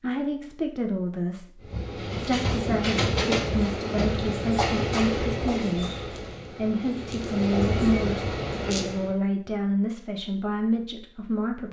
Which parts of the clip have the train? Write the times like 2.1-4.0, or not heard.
1.6-9.2.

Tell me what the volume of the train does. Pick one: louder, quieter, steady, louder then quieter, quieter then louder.
quieter then louder.